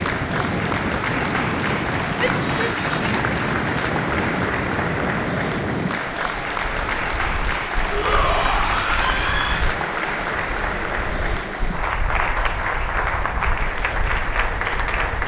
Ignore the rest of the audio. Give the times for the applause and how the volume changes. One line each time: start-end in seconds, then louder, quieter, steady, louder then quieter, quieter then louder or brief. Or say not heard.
0.0-15.2 steady.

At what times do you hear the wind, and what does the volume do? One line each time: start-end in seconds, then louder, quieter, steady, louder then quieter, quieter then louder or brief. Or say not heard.
0.0-15.2 quieter.